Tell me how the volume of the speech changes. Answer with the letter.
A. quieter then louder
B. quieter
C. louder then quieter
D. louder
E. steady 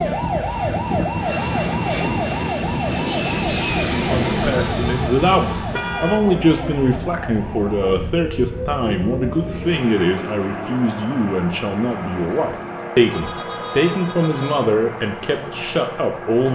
E.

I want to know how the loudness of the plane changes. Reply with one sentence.
The volume of the plane goes down.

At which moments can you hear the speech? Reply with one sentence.
You can hear the speech from 4.0 to 16.4 s.